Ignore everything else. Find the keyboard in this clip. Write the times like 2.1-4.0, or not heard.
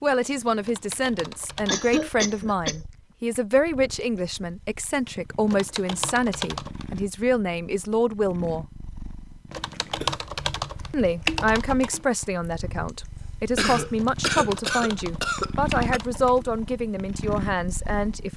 0.6-1.9, 5.5-6.8, 9.5-12.1, 13.9-16.4.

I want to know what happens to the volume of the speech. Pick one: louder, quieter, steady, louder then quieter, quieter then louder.
steady.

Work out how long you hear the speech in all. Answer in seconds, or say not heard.
16 s.